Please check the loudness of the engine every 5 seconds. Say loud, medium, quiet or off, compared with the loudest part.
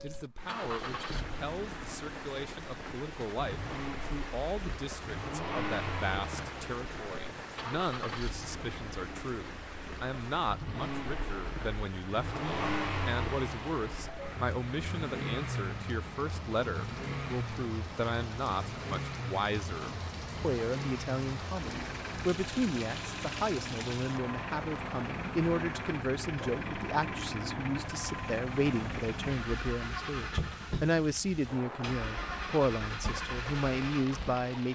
medium, loud, loud, loud, loud, loud, loud.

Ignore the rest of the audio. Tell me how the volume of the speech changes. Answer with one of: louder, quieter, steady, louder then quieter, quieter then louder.
louder.